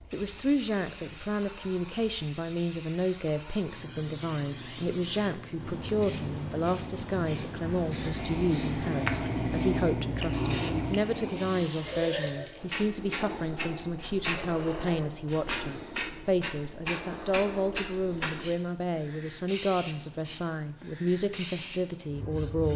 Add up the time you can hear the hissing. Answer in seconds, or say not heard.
23 s.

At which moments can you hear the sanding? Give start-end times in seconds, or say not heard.
not heard.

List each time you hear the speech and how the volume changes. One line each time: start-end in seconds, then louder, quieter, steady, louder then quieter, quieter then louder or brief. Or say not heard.
0.1-22.7 steady.